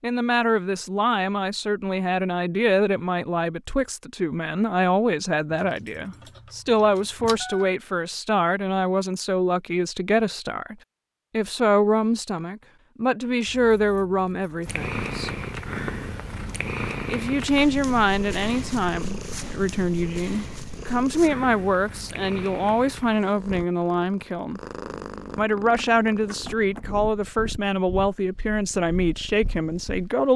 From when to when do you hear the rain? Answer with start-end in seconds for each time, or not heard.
not heard.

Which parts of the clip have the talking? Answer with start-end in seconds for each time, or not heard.
0.0-15.3, 17.1-24.6, 25.4-30.3.